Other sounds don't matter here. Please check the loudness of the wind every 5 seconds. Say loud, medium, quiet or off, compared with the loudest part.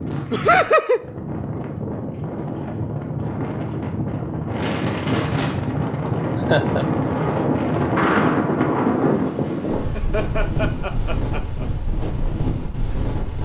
medium, loud, medium.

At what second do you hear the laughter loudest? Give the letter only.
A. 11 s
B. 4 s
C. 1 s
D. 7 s
C.